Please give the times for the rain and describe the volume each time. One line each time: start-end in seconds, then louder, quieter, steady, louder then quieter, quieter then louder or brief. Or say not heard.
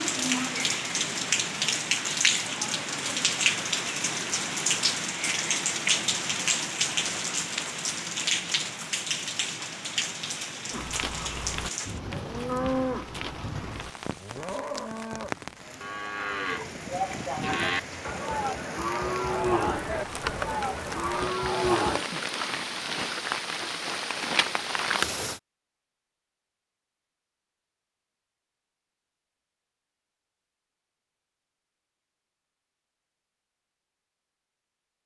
0.0-25.4 quieter then louder.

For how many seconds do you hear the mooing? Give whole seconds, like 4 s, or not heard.
11 s.